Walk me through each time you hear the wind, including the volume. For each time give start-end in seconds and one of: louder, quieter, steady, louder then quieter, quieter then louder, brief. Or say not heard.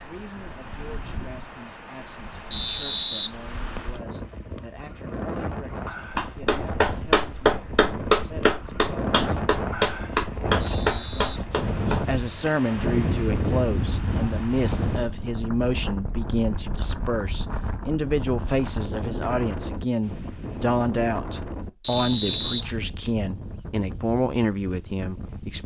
0.0-25.6 louder then quieter.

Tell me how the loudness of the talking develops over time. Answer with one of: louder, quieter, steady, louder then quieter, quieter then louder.
louder.